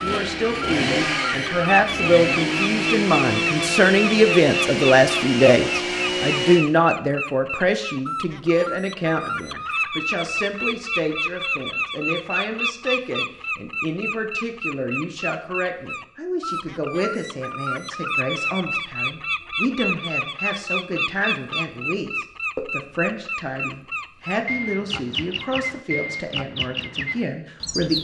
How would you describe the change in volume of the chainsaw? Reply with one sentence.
The volume of the chainsaw stays about the same.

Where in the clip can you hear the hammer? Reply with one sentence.
You can't hear the hammer here.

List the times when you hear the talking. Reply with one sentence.
You can hear the talking from 0.0 to 28.0 s.